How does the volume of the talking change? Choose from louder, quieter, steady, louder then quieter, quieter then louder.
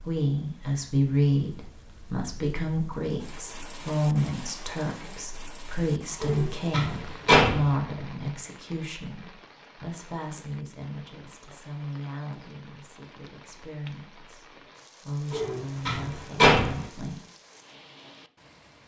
quieter.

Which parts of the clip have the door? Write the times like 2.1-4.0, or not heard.
6.2-7.8, 15.3-16.9.